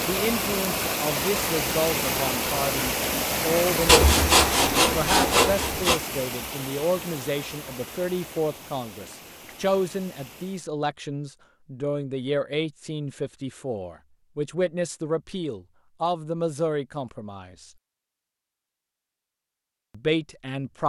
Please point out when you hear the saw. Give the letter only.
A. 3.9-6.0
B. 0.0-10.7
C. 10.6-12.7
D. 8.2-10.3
A.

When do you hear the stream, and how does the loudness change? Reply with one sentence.
You can hear the stream from 0.0 to 10.7 s, getting quieter.